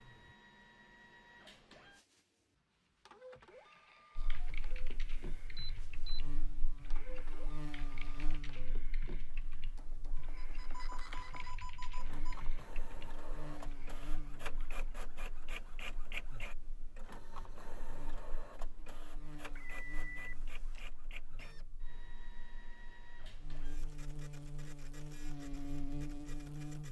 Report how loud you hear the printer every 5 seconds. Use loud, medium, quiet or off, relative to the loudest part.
medium, medium, loud, loud, medium, medium.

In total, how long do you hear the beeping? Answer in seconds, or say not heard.
4 s.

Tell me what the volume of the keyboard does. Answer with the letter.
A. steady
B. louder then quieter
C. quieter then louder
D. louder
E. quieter
A.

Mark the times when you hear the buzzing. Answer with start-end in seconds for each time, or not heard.
4.2-26.8.